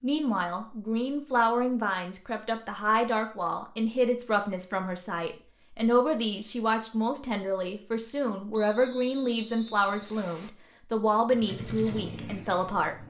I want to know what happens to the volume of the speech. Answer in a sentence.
The volume of the speech stays about the same.